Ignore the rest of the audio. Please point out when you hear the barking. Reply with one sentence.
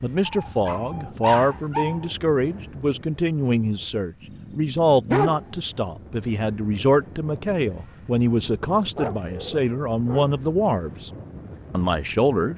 You can hear the barking from 0.2 to 2.0 s, from 4.2 to 5.7 s and from 8.9 to 10.3 s.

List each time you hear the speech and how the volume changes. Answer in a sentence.
You can hear the speech from 0.0 to 11.1 s, at a steady volume; and briefly from 11.7 to 12.5 s.